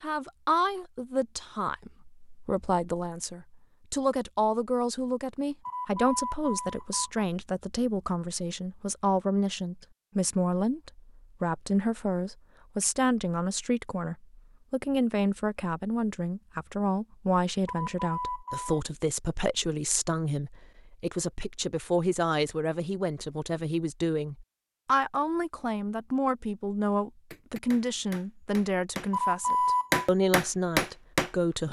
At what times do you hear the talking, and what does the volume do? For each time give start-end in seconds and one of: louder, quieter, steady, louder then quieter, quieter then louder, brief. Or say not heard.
0.0-31.6 steady.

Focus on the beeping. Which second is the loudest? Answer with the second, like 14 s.
30 s.